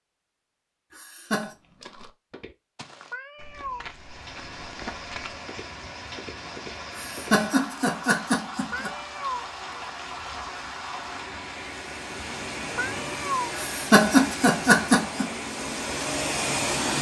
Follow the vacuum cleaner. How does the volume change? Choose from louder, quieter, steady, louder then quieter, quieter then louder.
louder.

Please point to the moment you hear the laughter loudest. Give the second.
14 s.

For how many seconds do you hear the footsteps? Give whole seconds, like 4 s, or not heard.
6 s.